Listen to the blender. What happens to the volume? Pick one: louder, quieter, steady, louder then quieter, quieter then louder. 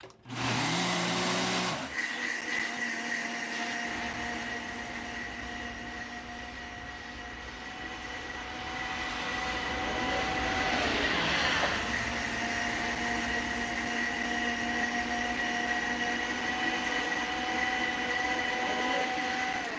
quieter then louder.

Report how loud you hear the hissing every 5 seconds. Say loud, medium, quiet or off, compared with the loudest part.
medium, medium, loud, medium.